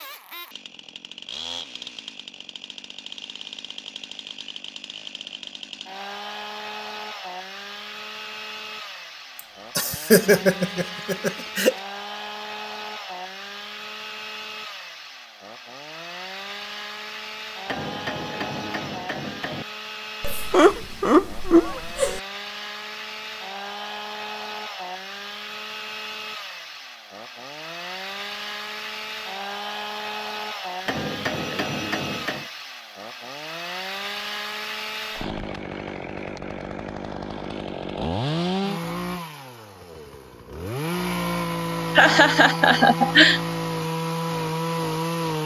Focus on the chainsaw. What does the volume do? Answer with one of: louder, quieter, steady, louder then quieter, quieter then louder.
louder.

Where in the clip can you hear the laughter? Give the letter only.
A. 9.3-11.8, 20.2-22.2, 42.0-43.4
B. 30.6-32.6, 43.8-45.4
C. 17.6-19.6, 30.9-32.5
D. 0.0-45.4
A.